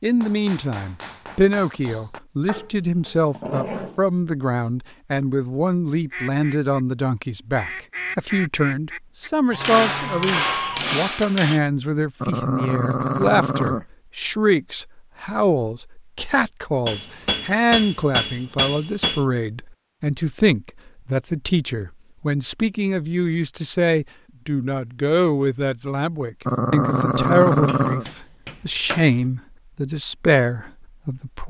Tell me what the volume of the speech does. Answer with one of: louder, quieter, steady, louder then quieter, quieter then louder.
steady.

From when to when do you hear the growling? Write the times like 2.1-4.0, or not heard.
2.5-4.0, 12.2-13.8, 26.4-28.1.